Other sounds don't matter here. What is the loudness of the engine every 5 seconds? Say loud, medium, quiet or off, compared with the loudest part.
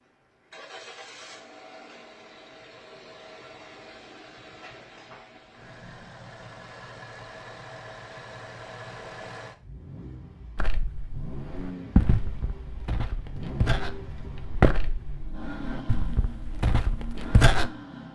medium, loud, loud, loud.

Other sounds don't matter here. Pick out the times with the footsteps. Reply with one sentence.
You can hear the footsteps from 10.6 to 17.7 s.